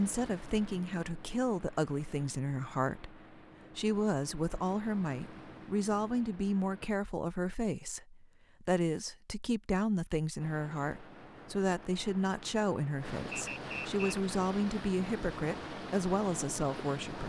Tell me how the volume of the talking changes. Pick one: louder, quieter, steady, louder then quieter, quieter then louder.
steady.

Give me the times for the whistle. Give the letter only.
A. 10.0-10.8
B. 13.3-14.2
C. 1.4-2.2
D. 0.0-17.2
B.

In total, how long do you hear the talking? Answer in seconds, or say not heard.
17 s.